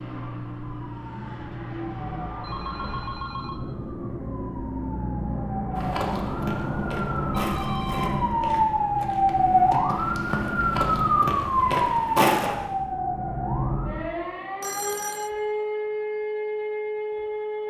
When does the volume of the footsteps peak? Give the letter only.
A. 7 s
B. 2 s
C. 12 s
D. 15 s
C.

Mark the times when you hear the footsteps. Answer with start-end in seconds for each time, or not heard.
5.8-12.6.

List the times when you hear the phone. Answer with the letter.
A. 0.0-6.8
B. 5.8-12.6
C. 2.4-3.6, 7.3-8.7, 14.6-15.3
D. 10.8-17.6
C.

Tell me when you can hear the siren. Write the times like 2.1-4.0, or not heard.
0.0-17.6.